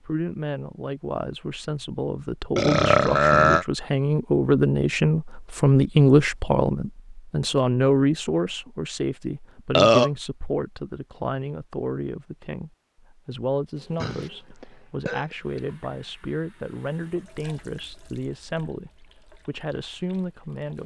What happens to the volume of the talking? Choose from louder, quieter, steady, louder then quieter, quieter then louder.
louder then quieter.